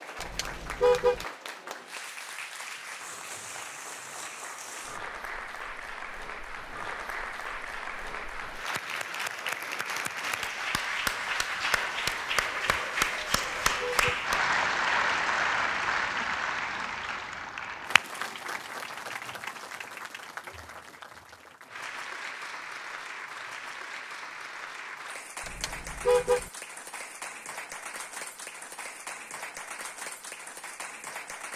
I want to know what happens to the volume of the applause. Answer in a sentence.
The loudness of the applause goes up, then down.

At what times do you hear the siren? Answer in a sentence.
You can't hear the siren here.